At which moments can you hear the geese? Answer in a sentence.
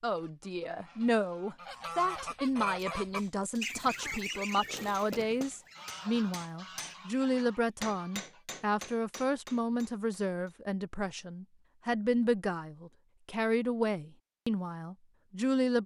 The geese can be heard from 0.1 to 8.4 s.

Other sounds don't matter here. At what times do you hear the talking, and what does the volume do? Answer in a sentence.
You can hear the talking from 0.0 to 15.8 s, at a steady volume.